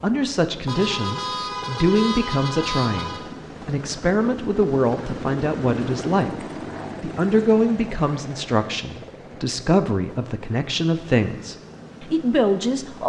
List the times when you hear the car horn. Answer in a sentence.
The car horn can be heard from 0.7 to 3.2 s.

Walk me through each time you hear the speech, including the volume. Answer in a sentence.
The speech can be heard from 0.0 to 13.0 s, at a steady volume.